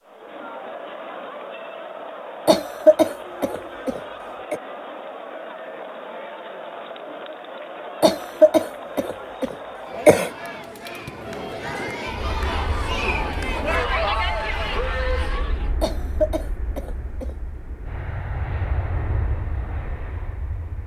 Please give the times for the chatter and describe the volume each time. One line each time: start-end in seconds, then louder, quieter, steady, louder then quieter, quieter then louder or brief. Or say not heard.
0.0-15.8 louder.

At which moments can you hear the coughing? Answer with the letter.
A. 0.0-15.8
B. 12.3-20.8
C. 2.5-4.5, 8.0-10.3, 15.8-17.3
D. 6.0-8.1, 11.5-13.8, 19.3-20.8
C.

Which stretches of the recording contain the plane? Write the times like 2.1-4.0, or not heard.
12.3-20.8.